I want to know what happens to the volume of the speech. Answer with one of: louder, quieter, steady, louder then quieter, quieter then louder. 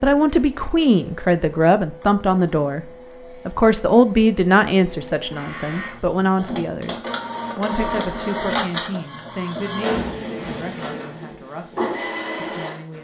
quieter.